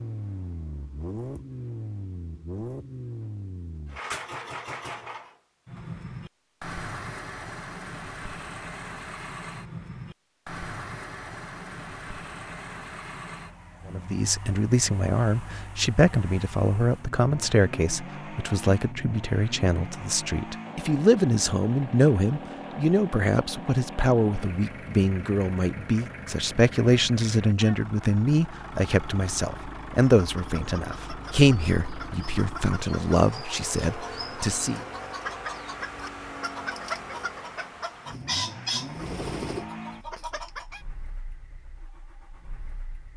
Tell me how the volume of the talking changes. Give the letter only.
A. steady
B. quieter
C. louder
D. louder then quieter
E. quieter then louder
A.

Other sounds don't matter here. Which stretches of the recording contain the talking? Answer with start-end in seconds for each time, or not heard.
13.8-34.8.